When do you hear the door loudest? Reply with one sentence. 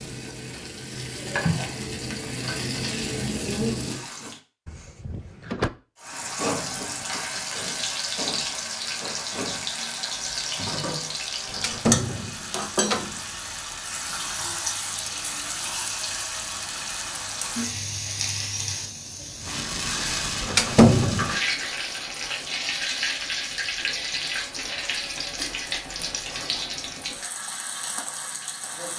The volume of the door peaks at 21 seconds.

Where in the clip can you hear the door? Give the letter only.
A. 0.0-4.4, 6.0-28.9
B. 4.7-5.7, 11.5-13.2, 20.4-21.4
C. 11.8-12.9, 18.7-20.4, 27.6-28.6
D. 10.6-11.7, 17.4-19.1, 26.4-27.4
B.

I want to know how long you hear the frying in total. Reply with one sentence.
The frying can be heard for 27 seconds in total.